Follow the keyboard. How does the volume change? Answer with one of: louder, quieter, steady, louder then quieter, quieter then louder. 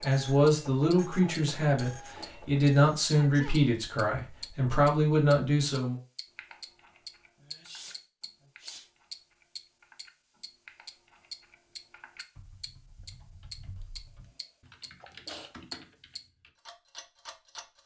louder.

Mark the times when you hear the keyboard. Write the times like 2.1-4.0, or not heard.
6.3-16.5.